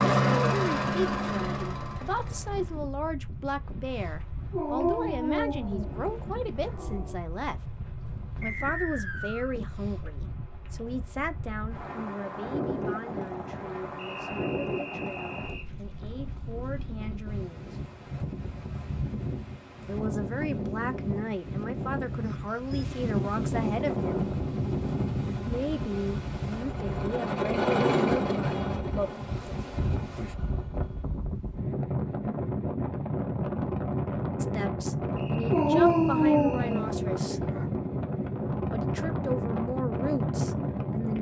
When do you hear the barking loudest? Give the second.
36 s.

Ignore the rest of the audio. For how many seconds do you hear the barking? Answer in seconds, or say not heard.
5 s.